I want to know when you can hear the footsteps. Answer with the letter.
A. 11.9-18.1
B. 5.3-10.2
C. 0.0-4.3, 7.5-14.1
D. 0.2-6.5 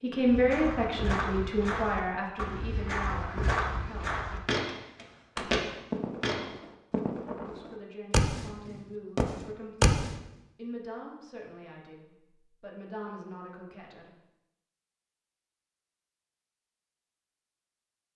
D.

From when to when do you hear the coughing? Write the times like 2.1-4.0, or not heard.
not heard.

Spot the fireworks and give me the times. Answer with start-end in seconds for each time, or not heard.
5.3-10.2.